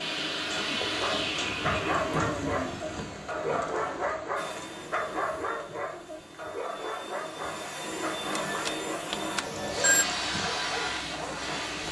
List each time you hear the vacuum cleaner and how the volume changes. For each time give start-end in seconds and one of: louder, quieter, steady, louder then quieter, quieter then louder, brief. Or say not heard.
0.0-11.8 quieter then louder.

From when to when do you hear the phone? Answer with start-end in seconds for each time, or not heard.
8.3-10.1.